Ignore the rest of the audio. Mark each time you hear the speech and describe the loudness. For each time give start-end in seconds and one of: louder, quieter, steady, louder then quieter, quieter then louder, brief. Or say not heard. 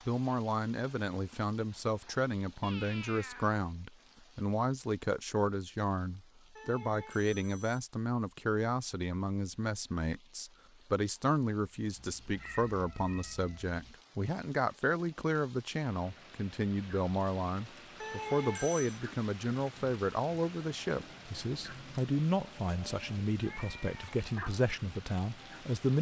0.1-25.9 steady.